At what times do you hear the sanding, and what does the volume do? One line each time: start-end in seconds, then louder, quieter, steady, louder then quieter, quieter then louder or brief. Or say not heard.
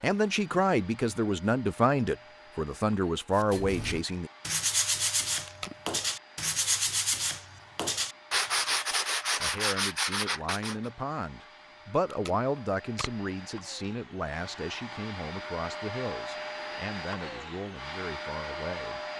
3.4-10.8 steady.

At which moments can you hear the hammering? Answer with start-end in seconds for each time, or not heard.
not heard.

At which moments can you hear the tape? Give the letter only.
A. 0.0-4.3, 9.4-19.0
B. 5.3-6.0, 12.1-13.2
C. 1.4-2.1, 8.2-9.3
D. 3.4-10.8
B.